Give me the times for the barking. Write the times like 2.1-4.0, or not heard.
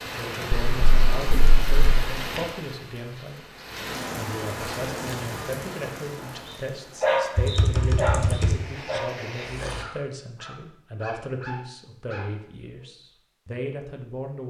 6.2-12.8.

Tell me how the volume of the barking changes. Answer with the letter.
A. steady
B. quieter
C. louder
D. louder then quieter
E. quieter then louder
B.